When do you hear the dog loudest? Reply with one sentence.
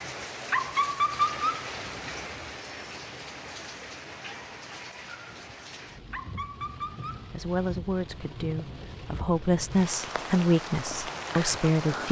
The loudest moment of the dog is at 1 second.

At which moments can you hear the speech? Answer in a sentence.
The speech can be heard from 7.3 to 12.0 s.